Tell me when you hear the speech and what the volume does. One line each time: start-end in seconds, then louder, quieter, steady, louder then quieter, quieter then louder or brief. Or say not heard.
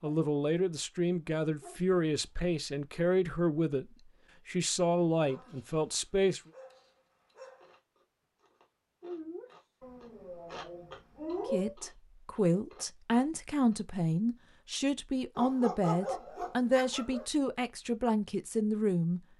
0.0-6.4 steady
11.5-19.2 steady.